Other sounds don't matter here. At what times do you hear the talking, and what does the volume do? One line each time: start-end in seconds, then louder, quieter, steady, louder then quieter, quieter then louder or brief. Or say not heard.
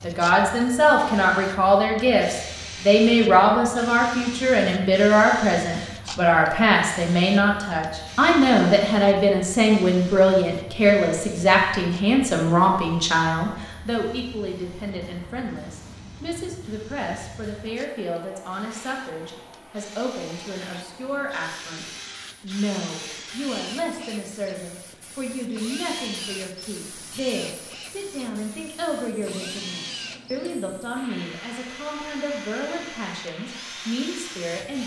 0.0-34.8 quieter.